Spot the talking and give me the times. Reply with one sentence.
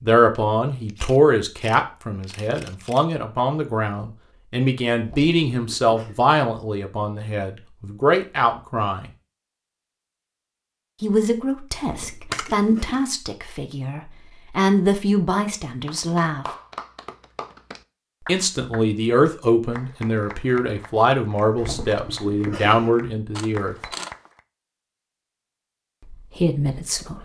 The talking can be heard from 0.0 to 9.1 s, from 11.0 to 16.4 s, from 18.2 to 23.8 s and from 26.1 to 27.2 s.